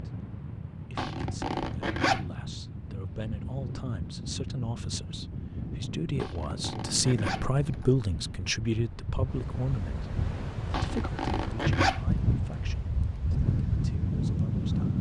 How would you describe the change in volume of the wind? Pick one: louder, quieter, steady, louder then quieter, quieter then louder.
louder.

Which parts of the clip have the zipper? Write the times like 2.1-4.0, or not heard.
0.9-2.2, 6.2-7.9, 10.7-12.0.